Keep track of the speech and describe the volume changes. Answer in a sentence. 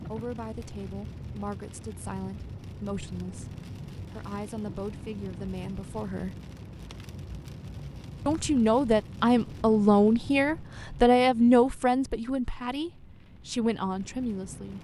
The loudness of the speech goes up, then down.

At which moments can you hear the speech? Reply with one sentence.
The speech can be heard from 0.1 to 6.3 s and from 8.2 to 14.7 s.